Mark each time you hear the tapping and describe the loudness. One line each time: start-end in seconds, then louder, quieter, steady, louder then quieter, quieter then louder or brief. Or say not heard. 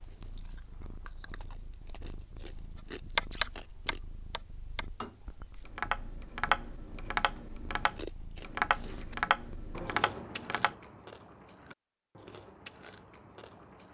3.1-10.8 louder.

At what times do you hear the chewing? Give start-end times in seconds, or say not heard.
0.0-4.0, 8.0-13.8.